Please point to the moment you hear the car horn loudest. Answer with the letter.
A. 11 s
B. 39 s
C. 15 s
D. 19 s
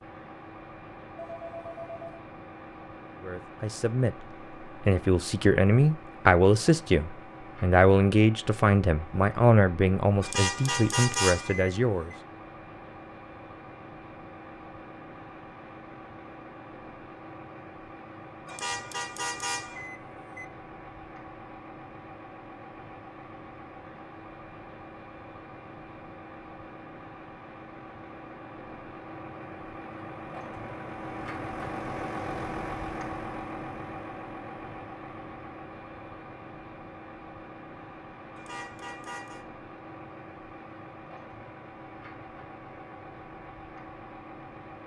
A.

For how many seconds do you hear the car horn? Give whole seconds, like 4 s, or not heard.
5 s.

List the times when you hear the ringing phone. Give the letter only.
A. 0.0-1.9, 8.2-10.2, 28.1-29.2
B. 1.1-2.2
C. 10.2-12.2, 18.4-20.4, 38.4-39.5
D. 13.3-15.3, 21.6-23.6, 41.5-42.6
B.